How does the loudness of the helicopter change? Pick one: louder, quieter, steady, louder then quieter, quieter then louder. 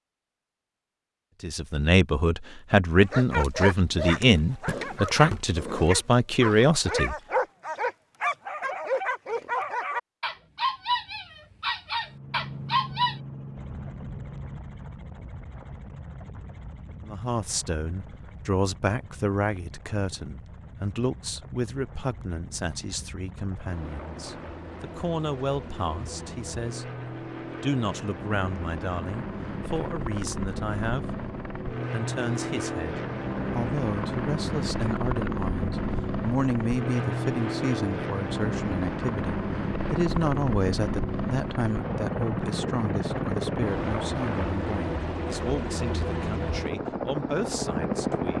louder.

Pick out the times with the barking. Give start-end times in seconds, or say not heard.
3.0-13.2.